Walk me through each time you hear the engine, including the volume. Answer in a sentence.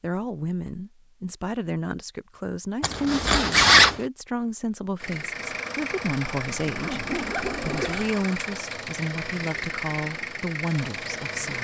You can hear the engine from 5.0 to 11.5 s, at a steady volume.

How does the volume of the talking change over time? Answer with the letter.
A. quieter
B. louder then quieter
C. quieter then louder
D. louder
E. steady
E.